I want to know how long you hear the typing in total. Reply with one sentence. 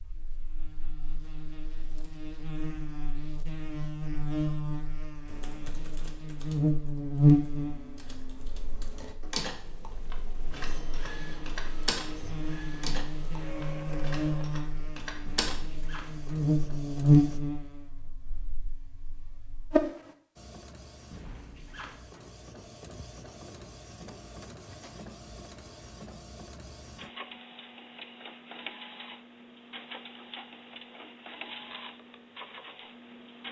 You can hear the typing for 10 seconds altogether.